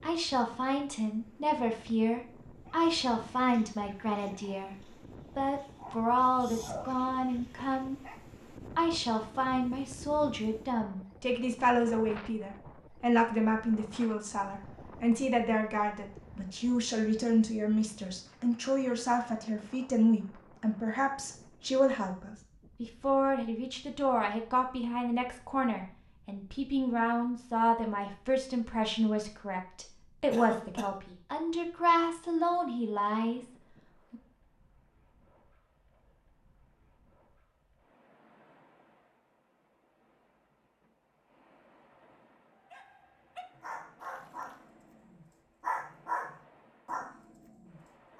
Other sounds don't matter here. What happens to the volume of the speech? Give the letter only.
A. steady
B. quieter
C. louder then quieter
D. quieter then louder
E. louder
A.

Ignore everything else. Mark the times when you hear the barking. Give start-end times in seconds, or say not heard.
2.6-8.2, 42.7-48.1.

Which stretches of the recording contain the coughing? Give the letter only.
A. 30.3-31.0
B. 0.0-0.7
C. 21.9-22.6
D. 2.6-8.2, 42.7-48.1
A.